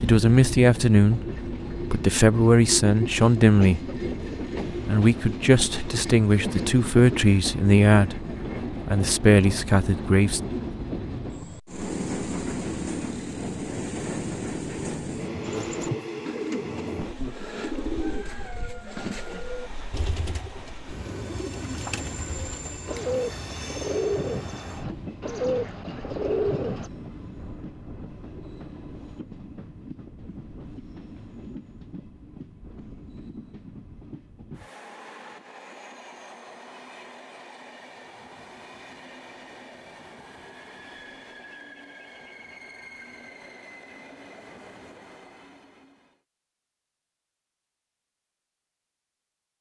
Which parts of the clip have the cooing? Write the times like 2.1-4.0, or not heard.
15.4-26.9.